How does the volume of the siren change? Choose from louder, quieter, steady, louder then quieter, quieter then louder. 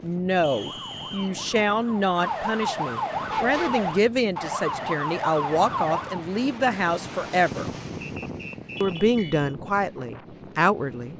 louder.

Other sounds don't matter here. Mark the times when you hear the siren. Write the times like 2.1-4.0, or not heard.
0.0-6.2.